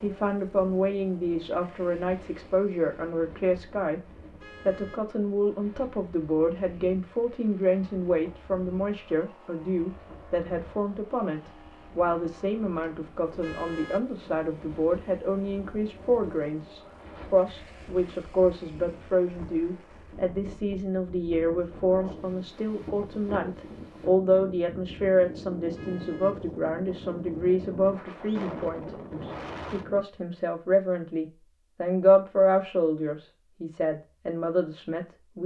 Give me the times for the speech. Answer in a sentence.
You can hear the speech from 0.0 to 4.0 s and from 4.7 to 35.4 s.